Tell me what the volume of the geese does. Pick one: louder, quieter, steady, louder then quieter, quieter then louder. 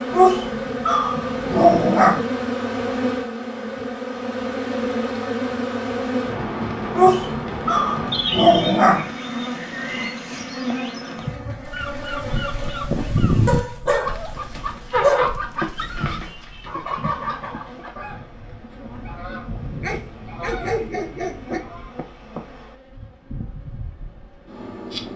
quieter.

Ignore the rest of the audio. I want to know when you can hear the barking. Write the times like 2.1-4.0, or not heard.
0.1-2.2, 6.9-9.1, 13.4-16.2, 19.8-21.6.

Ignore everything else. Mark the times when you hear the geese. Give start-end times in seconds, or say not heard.
11.2-21.9.